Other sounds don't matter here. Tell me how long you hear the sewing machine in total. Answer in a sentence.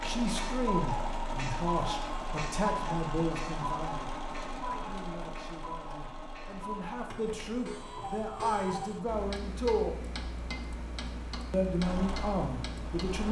The sewing machine can be heard for 11 seconds in total.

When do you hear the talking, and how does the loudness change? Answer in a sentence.
You can hear the talking from 0.0 to 9.9 s, getting quieter then louder; and briefly from 11.5 to 13.2 s.